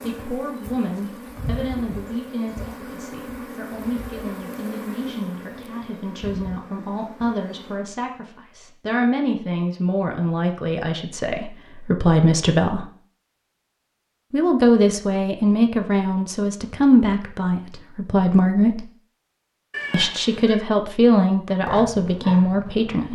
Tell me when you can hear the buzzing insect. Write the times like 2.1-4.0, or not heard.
0.0-7.9.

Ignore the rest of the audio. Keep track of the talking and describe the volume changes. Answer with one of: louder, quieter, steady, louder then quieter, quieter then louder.
louder.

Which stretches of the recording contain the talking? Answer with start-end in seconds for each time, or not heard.
0.0-12.8, 14.3-18.8, 19.9-23.1.